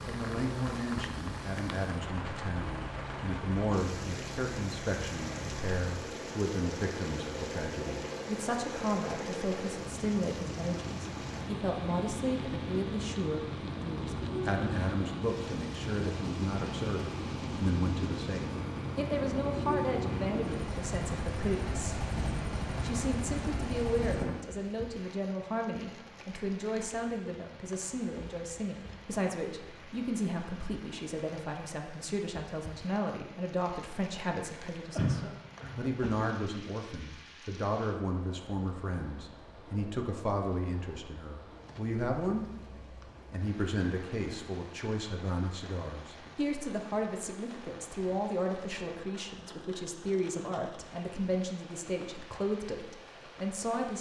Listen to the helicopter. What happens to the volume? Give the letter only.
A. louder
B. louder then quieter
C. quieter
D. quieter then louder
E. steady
A.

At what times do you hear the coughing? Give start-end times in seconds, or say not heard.
35.0-36.3.